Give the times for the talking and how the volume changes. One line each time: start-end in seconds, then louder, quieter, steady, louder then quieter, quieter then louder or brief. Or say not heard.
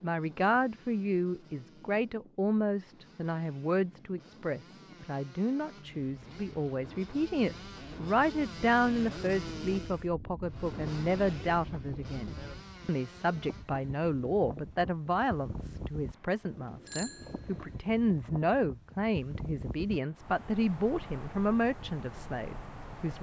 0.0-23.1 steady.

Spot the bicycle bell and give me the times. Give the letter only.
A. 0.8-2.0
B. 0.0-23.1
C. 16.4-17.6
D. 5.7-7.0
C.